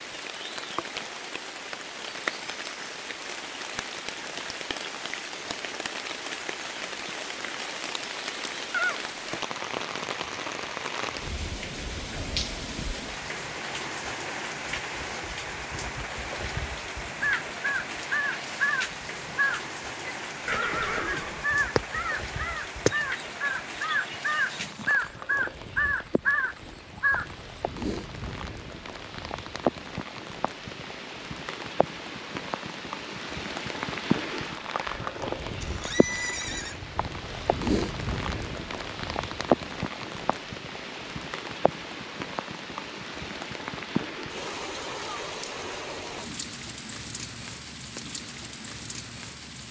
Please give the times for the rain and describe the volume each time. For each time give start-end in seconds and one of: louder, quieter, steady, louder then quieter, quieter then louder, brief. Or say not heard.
0.0-49.6 steady.